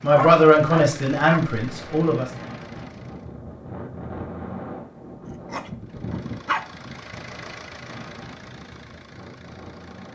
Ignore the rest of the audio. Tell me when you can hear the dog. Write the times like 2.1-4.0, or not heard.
0.1-1.5, 5.2-6.7.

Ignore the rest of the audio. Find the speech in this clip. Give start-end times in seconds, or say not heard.
0.0-2.2.